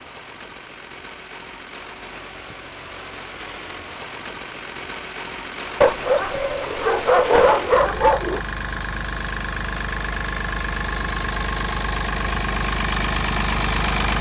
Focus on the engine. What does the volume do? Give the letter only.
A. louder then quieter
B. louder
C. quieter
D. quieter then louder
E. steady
B.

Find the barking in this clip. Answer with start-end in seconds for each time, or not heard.
5.8-8.4.